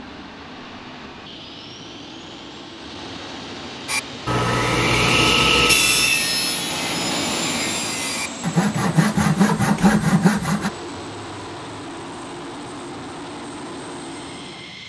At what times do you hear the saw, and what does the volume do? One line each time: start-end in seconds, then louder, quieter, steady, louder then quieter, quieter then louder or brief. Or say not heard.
3.9-10.7 quieter then louder.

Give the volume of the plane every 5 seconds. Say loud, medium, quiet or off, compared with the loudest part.
medium, loud, medium.